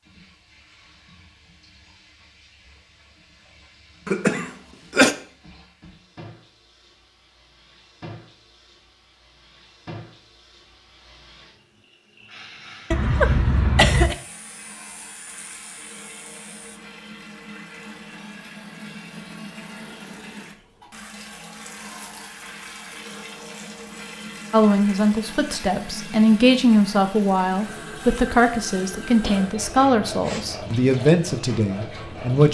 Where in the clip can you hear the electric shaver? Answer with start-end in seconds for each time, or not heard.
14.1-16.8.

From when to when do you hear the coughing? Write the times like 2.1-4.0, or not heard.
4.0-5.2, 12.9-14.2, 29.2-30.4.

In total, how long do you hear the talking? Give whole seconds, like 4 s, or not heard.
8 s.